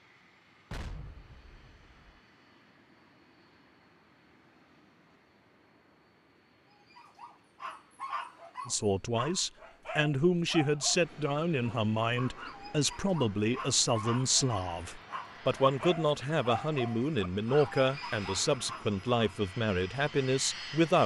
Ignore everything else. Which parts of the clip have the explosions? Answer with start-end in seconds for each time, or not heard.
0.7-2.2.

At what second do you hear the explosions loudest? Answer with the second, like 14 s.
1 s.